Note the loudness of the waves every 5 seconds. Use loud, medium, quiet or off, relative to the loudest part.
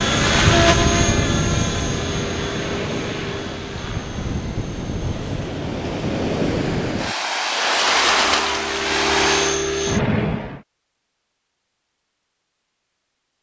medium, loud, off.